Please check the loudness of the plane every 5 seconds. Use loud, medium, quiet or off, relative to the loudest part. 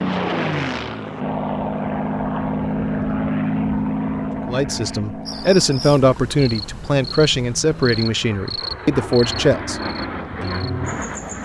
loud, medium, medium.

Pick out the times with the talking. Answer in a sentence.
The talking can be heard from 4.3 to 9.8 s.